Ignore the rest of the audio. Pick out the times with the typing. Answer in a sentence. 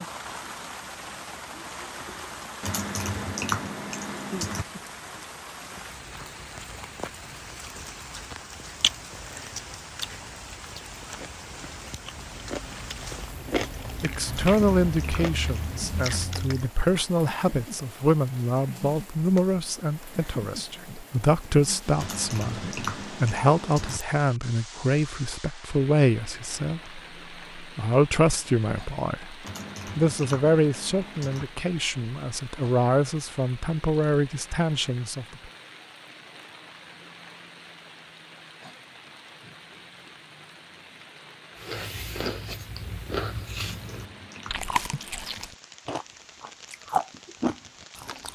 You can hear the typing from 2.6 to 4.7 s, from 14.2 to 16.2 s, from 21.9 to 24.0 s, from 29.4 to 31.4 s and from 43.5 to 45.5 s.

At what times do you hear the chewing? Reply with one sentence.
The chewing can be heard from 8.8 to 16.7 s and from 41.5 to 48.2 s.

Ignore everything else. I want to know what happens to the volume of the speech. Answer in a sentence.
The volume of the speech stays about the same.